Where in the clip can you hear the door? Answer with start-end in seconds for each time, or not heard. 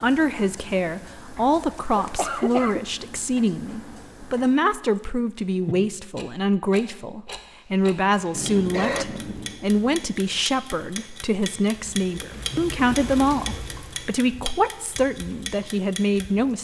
not heard.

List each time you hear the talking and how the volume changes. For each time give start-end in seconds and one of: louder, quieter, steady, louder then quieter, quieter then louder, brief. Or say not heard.
0.0-16.5 steady.